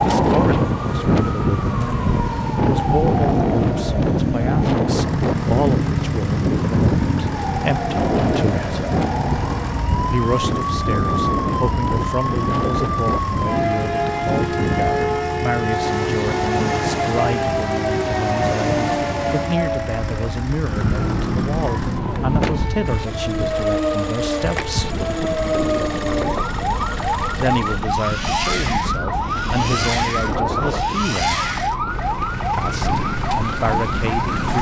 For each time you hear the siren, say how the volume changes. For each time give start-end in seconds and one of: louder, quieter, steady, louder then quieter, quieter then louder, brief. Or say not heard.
0.0-34.5 steady.